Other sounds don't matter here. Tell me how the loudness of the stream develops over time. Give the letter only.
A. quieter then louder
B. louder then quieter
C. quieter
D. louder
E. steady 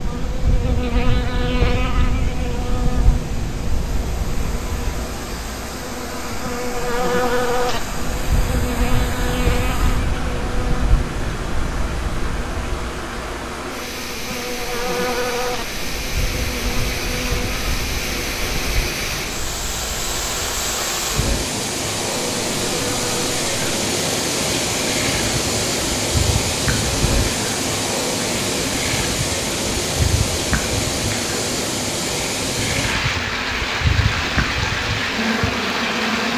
D.